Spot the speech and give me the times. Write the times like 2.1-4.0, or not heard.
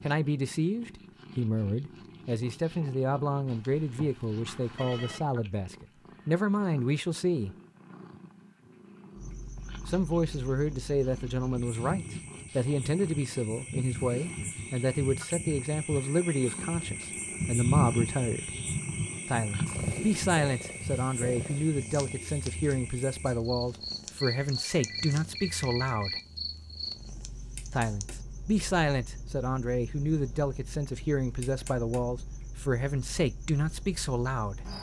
0.0-7.5, 9.8-18.5, 19.2-26.2, 27.7-34.6.